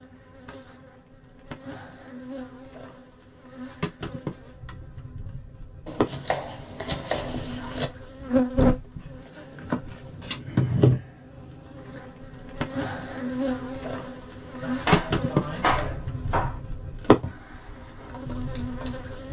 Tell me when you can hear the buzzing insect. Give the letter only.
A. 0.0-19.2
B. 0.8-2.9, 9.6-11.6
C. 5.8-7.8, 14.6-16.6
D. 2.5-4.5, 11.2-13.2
A.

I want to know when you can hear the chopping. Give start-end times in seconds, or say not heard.
5.8-7.8, 14.6-16.6.